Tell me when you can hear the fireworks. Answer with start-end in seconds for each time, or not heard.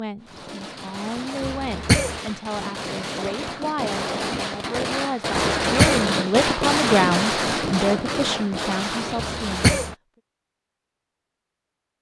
0.2-9.9.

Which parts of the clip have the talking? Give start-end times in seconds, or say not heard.
0.0-9.7.